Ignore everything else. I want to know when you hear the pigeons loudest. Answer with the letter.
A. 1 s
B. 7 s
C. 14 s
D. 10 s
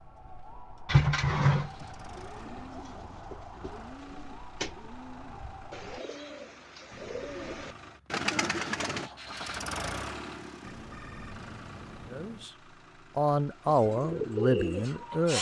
A.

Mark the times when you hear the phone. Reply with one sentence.
You can hear the phone from 1.9 to 2.6 s, from 6.9 to 7.8 s and from 10.6 to 12.5 s.